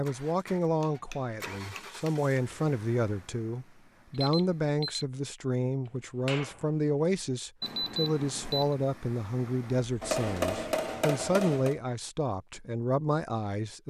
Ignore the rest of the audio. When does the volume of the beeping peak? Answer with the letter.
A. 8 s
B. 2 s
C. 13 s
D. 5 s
A.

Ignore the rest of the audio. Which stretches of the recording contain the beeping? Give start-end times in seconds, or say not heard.
4.2-5.0, 7.6-8.8.